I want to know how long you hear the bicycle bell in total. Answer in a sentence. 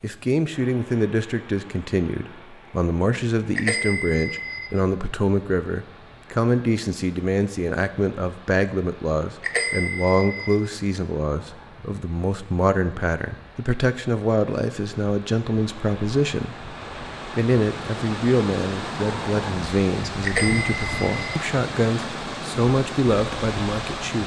The bicycle bell can be heard for 3 seconds in total.